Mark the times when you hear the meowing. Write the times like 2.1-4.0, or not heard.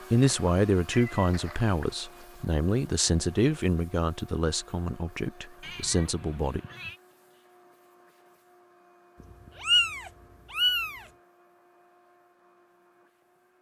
0.5-1.9, 5.6-7.0, 9.2-11.1.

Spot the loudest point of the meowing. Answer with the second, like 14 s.
10 s.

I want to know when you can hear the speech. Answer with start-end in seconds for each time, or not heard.
0.1-6.6.